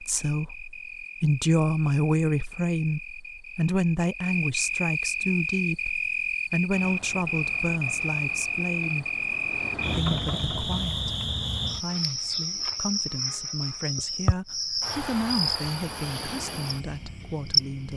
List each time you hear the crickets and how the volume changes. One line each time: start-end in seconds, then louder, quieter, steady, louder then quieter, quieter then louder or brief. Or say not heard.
0.0-17.9 louder.